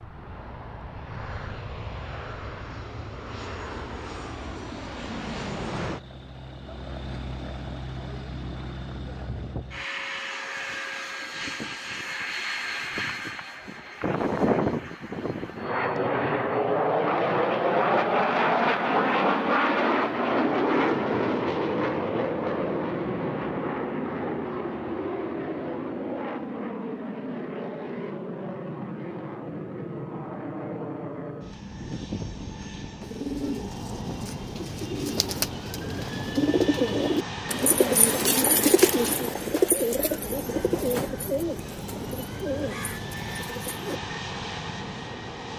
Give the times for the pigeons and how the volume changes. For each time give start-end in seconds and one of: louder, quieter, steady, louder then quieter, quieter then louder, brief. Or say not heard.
33.0-44.0 louder then quieter.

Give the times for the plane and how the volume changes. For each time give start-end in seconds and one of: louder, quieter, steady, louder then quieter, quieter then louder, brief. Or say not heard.
0.0-45.5 louder then quieter.